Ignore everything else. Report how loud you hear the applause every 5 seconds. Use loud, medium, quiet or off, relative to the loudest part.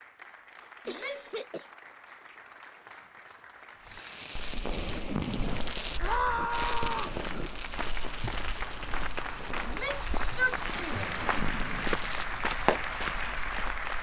quiet, medium, loud.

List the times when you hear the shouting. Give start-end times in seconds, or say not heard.
0.8-1.4, 6.0-7.2, 9.7-11.1.